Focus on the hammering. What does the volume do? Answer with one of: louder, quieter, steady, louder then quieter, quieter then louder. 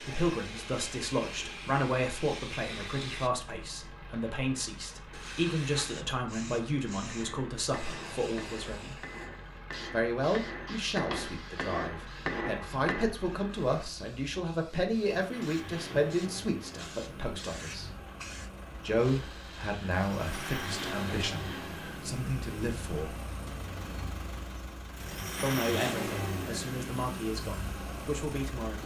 louder.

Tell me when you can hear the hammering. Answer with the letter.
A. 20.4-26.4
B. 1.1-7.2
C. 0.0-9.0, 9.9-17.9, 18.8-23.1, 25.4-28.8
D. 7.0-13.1
D.